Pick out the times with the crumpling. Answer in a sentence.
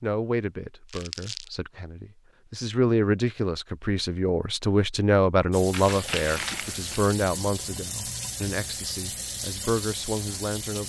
You can hear the crumpling from 0.8 to 1.5 s and from 5.7 to 7.2 s.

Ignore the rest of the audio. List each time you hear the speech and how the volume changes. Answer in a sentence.
The speech can be heard from 0.0 to 10.8 s, getting louder then quieter.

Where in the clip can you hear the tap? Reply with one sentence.
The tap can be heard from 5.5 to 10.8 s.